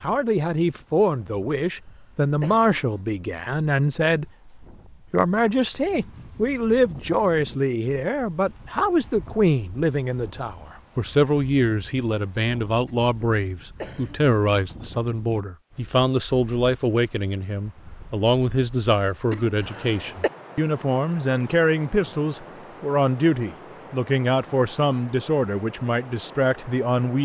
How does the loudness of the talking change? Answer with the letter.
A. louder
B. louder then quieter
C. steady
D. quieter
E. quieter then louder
C.